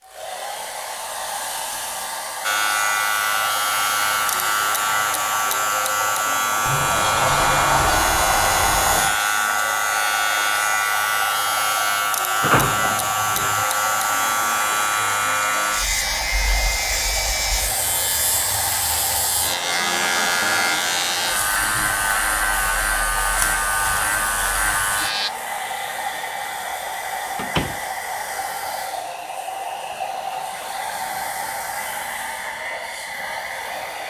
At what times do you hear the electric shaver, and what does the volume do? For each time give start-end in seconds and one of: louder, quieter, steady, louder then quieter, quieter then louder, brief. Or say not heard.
2.4-25.3 steady.